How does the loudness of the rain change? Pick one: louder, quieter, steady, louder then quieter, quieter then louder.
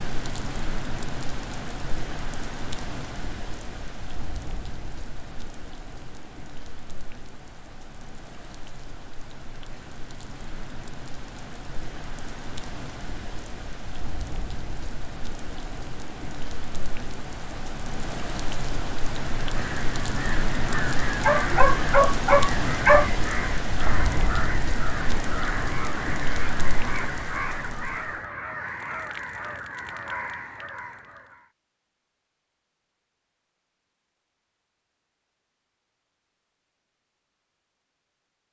quieter then louder.